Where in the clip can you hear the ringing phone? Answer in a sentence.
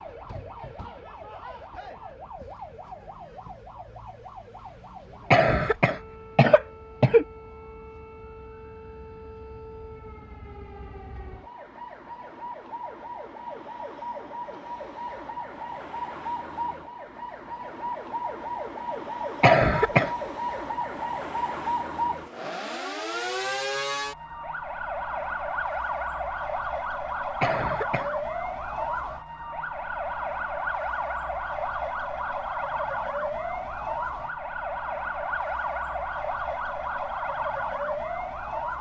You can't hear the ringing phone here.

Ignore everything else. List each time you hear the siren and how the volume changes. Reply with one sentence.
The siren can be heard from 0.0 to 38.7 s, getting louder.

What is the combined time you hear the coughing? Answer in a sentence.
You can hear the coughing for 3 seconds altogether.